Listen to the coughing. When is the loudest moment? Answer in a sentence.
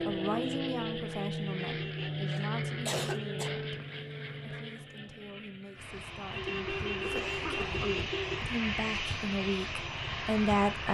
The volume of the coughing peaks at 3 seconds.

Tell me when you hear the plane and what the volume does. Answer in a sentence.
The plane can be heard from 0.0 to 10.8 s, getting quieter then louder.